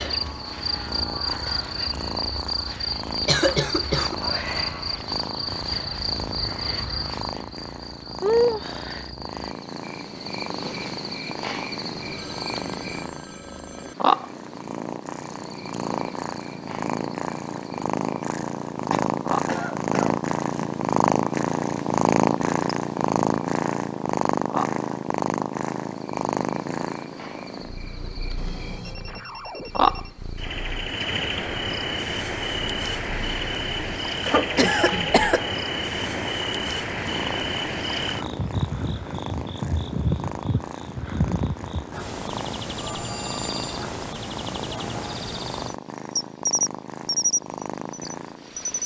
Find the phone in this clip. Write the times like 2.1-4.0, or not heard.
12.0-13.9, 28.4-30.2, 42.8-43.8.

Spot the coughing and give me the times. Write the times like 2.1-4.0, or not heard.
3.2-4.2, 18.9-20.1, 34.2-35.5.